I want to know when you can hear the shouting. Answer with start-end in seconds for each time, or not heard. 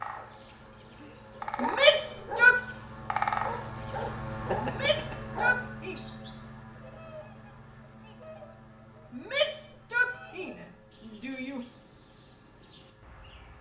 1.6-2.6, 4.6-6.0, 9.1-11.7.